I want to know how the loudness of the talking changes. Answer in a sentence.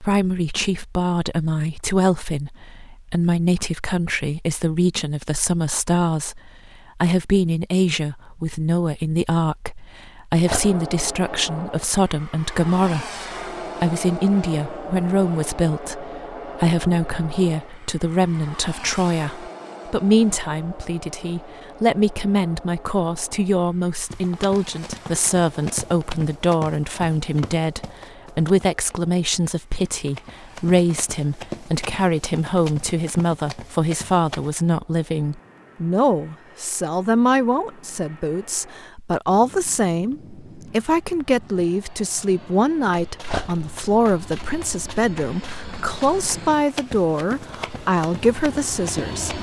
The loudness of the talking stays about the same.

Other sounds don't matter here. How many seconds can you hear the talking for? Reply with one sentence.
You can hear the talking for 49 seconds altogether.